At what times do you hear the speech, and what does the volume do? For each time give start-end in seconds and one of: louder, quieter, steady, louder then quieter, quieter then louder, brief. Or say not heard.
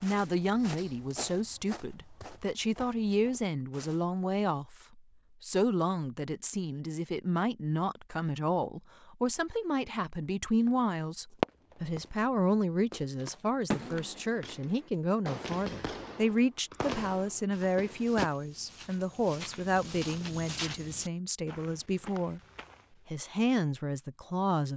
0.0-22.4 steady
23.1-24.7 brief.